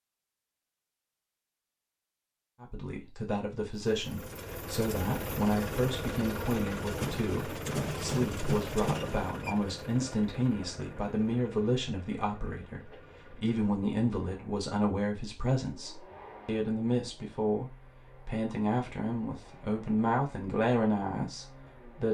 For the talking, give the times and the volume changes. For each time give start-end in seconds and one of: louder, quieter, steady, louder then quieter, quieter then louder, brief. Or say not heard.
2.6-22.0 steady.